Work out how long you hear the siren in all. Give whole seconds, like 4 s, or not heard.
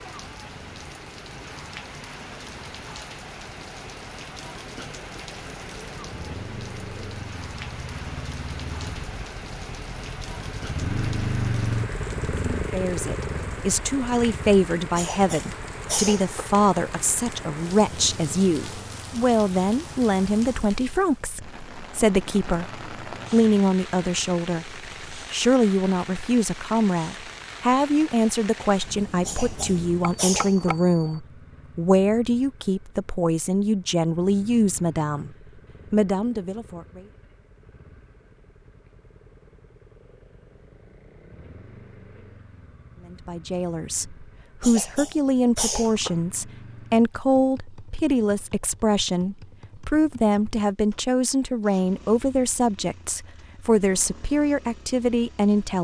not heard.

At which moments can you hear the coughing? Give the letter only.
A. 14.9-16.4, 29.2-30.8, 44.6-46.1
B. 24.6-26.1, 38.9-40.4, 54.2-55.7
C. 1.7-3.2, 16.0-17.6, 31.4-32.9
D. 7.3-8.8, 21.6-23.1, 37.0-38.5
A.